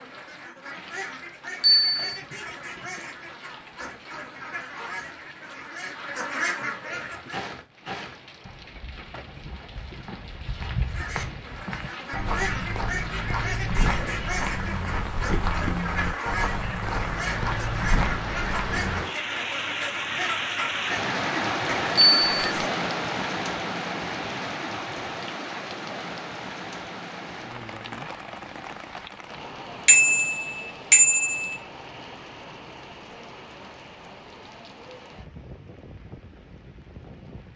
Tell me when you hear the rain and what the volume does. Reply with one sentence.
The rain can be heard from 0.0 to 37.5 s, getting louder then quieter.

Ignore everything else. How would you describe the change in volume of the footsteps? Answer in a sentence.
The volume of the footsteps goes up.